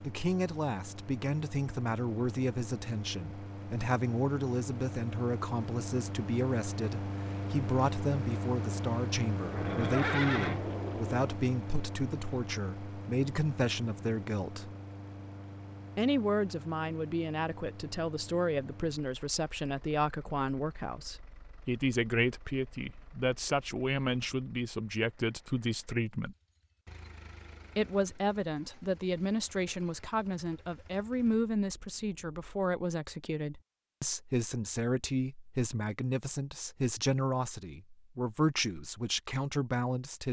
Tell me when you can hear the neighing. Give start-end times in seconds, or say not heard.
9.4-11.3.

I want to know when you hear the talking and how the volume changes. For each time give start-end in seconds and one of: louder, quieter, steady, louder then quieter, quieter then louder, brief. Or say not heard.
0.0-14.7 steady
15.9-26.4 steady
27.8-40.2 steady.